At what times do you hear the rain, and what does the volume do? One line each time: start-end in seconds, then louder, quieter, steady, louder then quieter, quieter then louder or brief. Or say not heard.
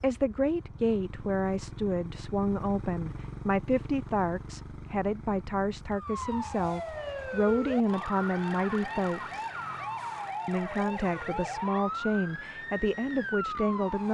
not heard.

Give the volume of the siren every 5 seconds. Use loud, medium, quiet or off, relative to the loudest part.
off, loud, loud.